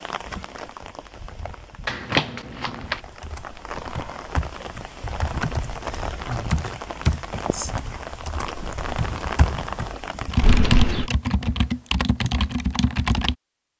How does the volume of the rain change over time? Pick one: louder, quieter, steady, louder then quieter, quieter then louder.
louder.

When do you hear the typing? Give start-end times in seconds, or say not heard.
2.9-13.3.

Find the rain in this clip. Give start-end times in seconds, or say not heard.
0.0-10.6.